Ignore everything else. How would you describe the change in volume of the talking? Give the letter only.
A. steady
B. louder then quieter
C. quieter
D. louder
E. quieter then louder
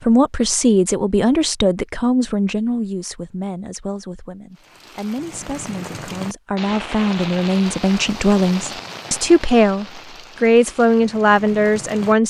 E.